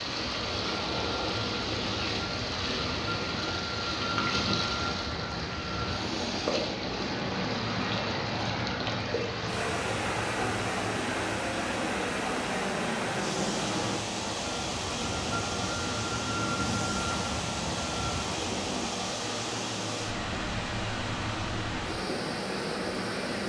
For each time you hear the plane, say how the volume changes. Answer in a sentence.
The plane can be heard from 0.0 to 18.9 s, at a steady volume.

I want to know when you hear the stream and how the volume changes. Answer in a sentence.
You can hear the stream from 0.0 to 23.4 s, at a steady volume.